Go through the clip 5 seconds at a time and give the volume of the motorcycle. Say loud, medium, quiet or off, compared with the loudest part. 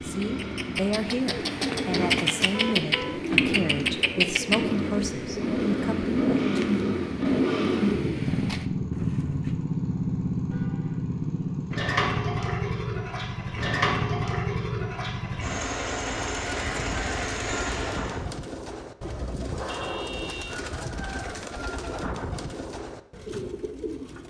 medium, loud, loud, medium, off.